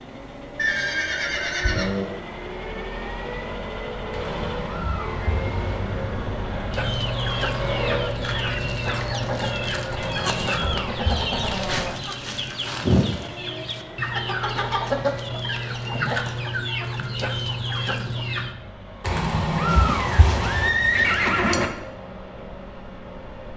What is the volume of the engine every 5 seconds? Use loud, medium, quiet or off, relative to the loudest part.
loud, loud, medium, medium, medium.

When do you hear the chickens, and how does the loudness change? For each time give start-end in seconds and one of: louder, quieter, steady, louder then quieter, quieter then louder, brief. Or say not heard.
6.7-18.6 steady.